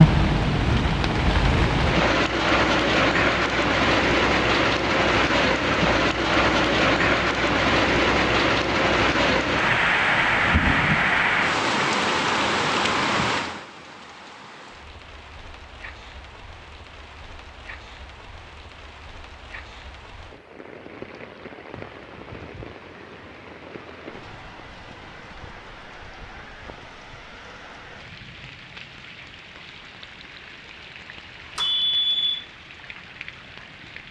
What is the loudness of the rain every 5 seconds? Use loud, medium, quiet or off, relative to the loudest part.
loud, loud, loud, quiet, quiet, quiet, quiet.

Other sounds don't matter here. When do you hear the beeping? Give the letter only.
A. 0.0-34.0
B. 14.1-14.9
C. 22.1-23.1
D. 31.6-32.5
D.